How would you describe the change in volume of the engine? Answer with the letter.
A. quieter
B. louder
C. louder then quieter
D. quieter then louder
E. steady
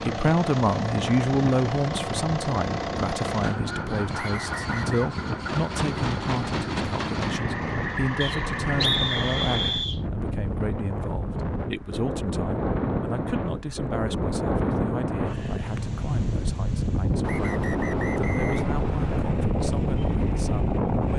E.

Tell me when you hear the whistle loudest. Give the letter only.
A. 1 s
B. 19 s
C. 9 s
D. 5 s
C.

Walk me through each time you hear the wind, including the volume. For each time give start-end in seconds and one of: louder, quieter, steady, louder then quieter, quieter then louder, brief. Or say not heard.
0.0-21.1 louder.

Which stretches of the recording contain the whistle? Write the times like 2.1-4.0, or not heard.
4.2-5.0, 8.2-10.0, 17.2-19.2.